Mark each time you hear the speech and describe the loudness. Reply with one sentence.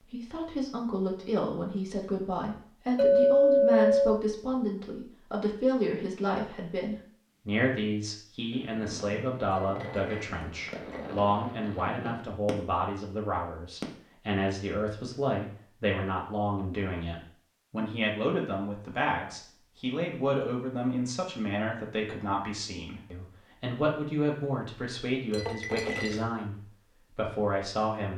You can hear the speech from 0.0 to 28.1 s, at a steady volume.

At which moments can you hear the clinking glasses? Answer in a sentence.
The clinking glasses can be heard from 3.0 to 4.2 s, from 9.5 to 11.2 s and from 25.3 to 26.2 s.